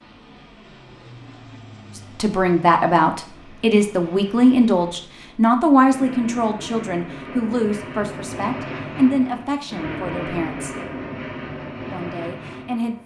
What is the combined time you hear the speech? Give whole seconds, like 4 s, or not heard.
10 s.